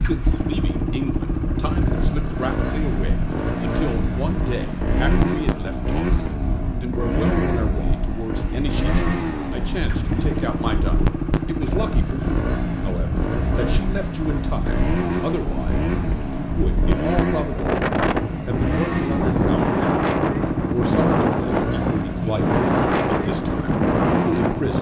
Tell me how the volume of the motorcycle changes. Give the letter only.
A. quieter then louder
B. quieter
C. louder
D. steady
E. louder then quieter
D.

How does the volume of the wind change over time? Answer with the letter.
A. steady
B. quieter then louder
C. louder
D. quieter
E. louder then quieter
C.